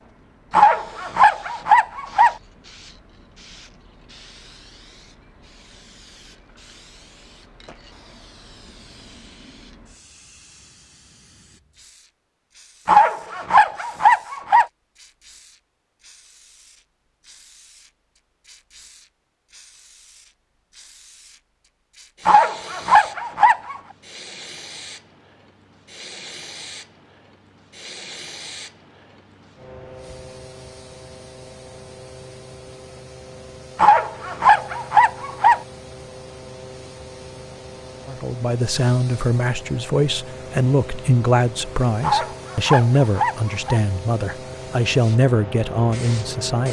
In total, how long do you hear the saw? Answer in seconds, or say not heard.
9 s.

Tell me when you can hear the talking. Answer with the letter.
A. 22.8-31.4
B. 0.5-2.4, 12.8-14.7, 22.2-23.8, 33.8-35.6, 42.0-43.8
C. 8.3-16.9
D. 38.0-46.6
D.